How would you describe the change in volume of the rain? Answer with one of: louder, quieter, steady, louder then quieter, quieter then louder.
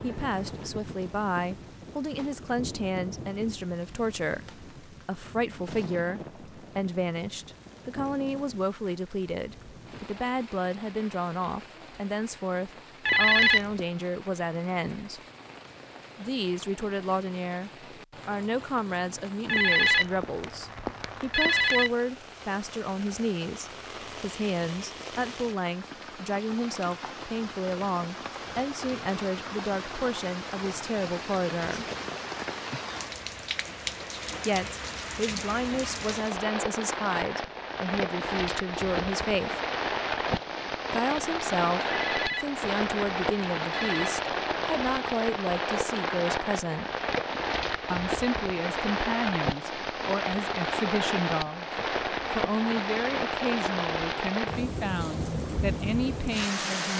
louder.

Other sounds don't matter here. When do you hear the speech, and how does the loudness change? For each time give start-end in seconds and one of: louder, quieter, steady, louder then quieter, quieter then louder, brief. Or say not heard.
0.0-15.2 steady
16.1-31.9 steady
34.5-39.5 steady
40.9-46.9 steady
47.9-56.9 steady.